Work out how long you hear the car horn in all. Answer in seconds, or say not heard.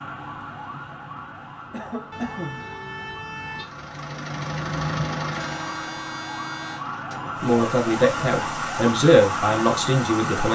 3 s.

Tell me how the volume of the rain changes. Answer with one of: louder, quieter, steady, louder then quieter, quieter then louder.
louder.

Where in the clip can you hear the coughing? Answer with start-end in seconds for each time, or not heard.
1.7-2.7.